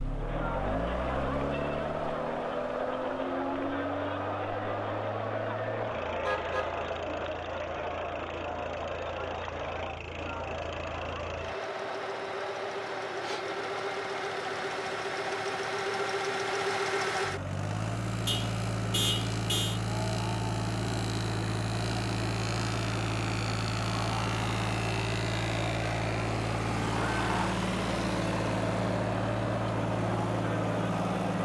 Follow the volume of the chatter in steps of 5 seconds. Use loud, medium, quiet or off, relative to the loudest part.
loud, loud, medium, medium, medium, loud, loud.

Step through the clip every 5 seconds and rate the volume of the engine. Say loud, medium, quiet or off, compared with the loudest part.
medium, quiet, medium, loud, loud, loud, loud.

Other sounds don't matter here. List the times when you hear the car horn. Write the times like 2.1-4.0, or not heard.
6.2-6.8, 18.2-19.8.